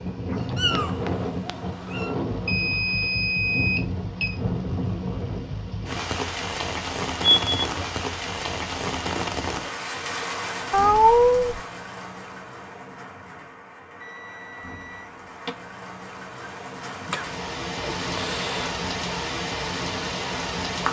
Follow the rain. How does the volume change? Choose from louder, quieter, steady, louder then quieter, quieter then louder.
quieter then louder.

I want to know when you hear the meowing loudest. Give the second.
11 s.